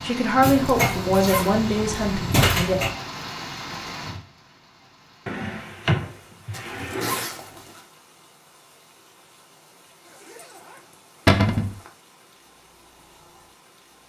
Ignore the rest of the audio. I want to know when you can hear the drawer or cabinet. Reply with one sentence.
The drawer or cabinet can be heard from 0.4 to 3.0 s, from 5.2 to 7.2 s and from 11.2 to 11.7 s.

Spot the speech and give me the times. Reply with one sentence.
The speech can be heard from 0.0 to 2.8 s.